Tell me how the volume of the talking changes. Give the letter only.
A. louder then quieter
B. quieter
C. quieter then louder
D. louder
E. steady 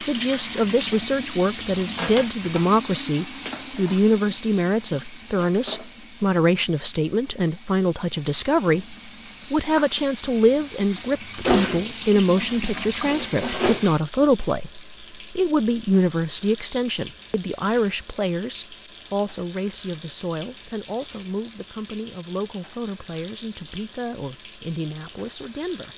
B.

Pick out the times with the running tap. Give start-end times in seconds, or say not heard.
0.0-25.9.